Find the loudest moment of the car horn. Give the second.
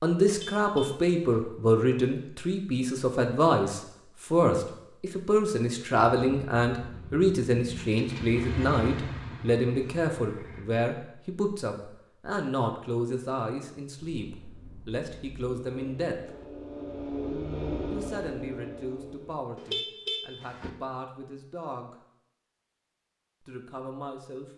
20 s.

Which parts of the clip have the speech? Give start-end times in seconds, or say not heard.
0.0-16.4, 17.9-21.9, 23.4-24.5.